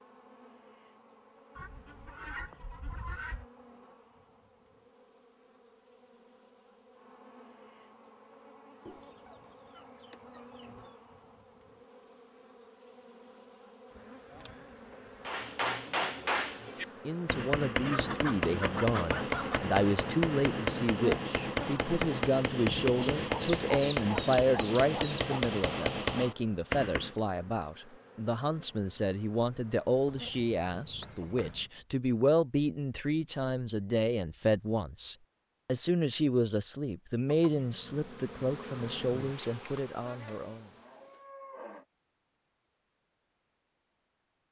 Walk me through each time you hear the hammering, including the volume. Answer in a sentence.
You can hear the hammering from 15.2 to 27.1 s, at a steady volume.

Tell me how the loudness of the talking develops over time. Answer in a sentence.
The loudness of the talking stays about the same.